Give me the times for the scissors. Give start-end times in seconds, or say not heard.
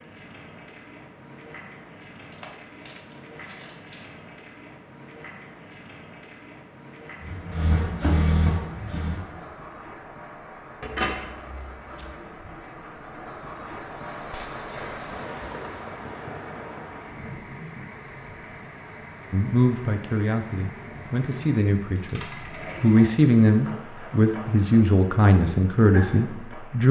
10.8-12.2.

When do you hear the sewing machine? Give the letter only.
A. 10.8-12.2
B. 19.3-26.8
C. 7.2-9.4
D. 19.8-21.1
C.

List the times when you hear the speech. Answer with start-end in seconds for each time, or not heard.
19.3-26.8.